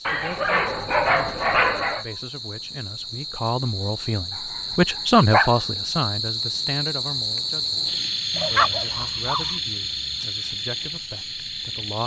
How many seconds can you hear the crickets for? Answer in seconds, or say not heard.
12 s.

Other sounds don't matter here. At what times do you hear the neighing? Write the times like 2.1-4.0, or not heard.
not heard.